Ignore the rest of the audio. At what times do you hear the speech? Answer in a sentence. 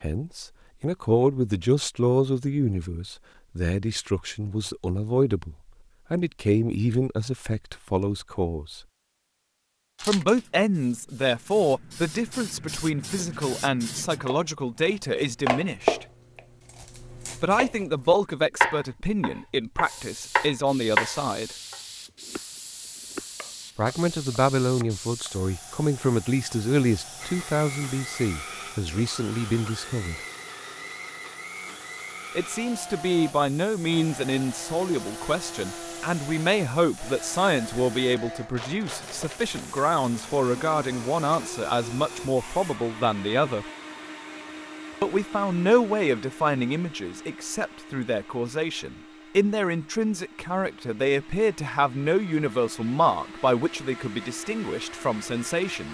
You can hear the speech from 0.0 to 8.8 s, from 10.0 to 16.1 s, from 17.4 to 21.6 s, from 23.8 to 30.2 s, from 32.4 to 43.6 s and from 45.0 to 55.8 s.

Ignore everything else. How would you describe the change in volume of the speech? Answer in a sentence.
The volume of the speech stays about the same.